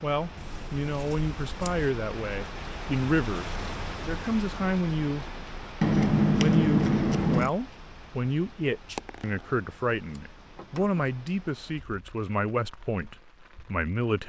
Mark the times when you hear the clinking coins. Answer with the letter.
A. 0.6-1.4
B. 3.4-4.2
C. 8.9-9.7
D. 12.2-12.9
C.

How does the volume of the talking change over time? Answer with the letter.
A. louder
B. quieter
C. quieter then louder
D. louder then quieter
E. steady
E.